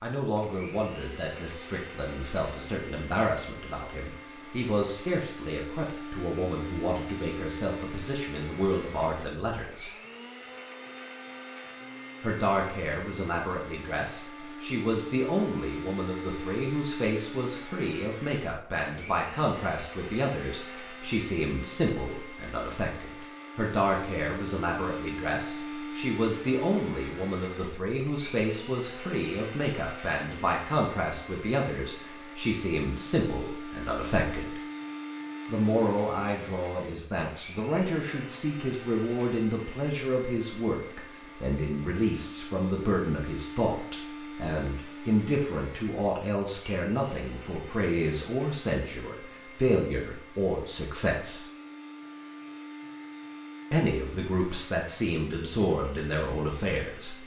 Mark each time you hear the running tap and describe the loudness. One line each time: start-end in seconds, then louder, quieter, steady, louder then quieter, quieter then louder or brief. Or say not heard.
not heard.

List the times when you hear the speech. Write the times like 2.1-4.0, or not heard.
0.0-9.9, 12.2-34.6, 35.5-51.5, 53.7-57.2.